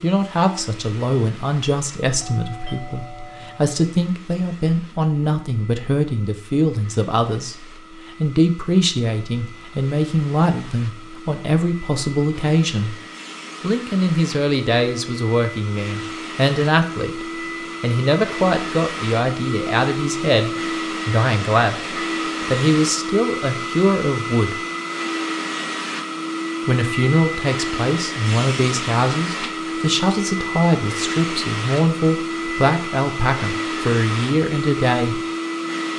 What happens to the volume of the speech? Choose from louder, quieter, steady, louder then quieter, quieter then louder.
steady.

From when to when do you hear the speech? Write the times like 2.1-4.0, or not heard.
0.0-13.0, 13.6-24.6, 26.6-35.2.